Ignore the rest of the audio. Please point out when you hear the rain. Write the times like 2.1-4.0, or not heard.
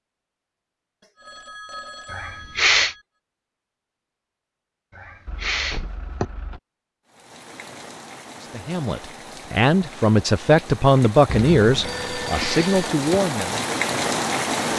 7.0-14.7.